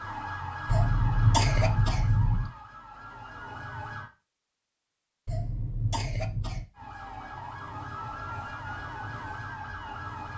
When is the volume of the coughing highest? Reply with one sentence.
The volume of the coughing peaks at 1 second.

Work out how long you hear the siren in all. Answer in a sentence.
You can hear the siren for 8 seconds altogether.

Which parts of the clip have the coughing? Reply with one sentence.
You can hear the coughing from 0.7 to 2.5 s and from 5.2 to 6.7 s.